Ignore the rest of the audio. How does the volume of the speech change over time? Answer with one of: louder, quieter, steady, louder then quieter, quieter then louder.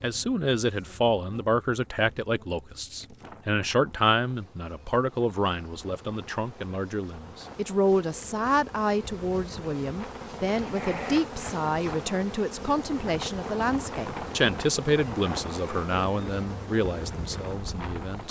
steady.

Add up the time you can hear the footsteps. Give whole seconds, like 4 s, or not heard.
not heard.